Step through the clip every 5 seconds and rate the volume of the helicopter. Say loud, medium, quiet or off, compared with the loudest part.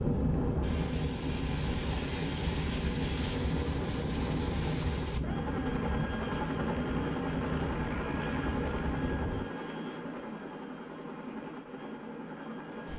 loud, loud, medium.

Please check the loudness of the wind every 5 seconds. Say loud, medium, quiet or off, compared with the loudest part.
loud, loud, off.